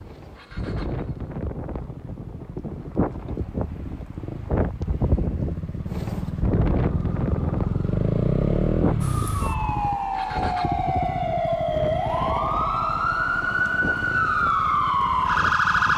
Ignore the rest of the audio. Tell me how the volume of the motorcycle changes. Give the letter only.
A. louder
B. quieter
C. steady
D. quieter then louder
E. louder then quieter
E.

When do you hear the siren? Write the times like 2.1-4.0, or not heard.
9.0-15.9.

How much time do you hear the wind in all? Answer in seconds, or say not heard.
16 s.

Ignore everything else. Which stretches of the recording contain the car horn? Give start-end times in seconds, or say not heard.
not heard.